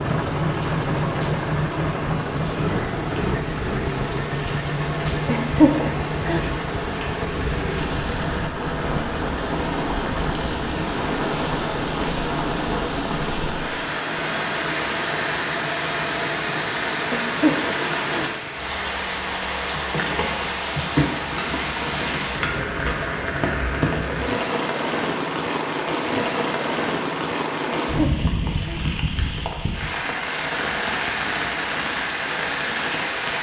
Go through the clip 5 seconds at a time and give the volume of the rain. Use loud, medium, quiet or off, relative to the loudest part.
medium, loud, loud, loud, loud, loud, loud.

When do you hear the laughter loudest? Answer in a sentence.
The volume of the laughter peaks at 6 seconds.